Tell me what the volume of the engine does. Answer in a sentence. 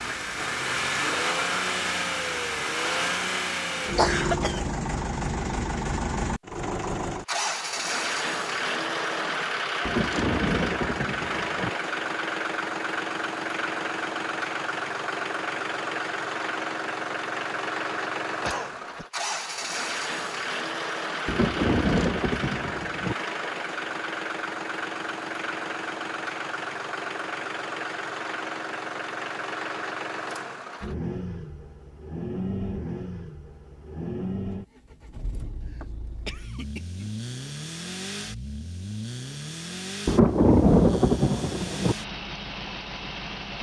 The loudness of the engine goes down.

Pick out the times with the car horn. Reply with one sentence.
You can't hear the car horn here.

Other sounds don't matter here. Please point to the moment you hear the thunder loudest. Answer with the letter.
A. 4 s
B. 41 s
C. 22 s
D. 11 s
B.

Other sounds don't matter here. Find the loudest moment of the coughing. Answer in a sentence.
The loudest moment of the coughing is at 4 seconds.